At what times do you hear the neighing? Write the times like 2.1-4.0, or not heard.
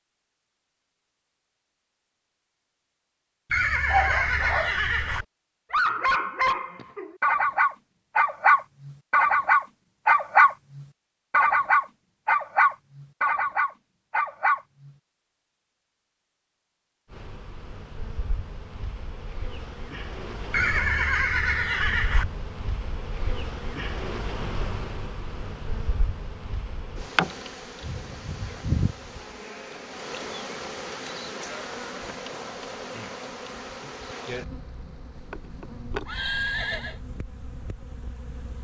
3.5-5.2, 20.5-22.2, 35.1-37.0.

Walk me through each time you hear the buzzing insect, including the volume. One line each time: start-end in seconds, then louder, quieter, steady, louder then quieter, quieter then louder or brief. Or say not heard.
17.1-38.5 louder then quieter.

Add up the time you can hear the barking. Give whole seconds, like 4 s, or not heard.
11 s.